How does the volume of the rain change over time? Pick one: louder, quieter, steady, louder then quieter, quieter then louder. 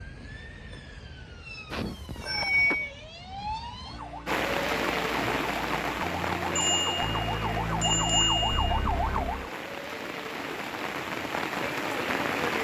quieter then louder.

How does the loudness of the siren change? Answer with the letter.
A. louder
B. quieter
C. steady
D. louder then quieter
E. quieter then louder
A.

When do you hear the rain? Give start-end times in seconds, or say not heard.
4.2-12.5.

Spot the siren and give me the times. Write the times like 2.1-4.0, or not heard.
0.0-9.5.